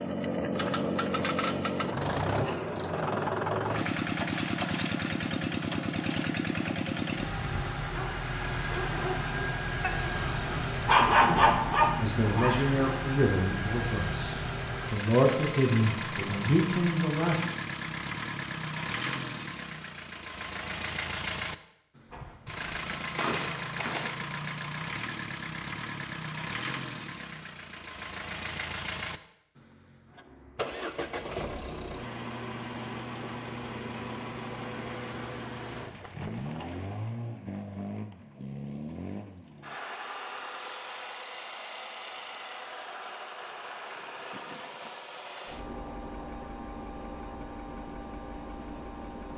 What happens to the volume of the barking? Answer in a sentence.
The loudness of the barking goes up.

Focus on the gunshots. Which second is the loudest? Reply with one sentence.
The volume of the gunshots peaks at 23 seconds.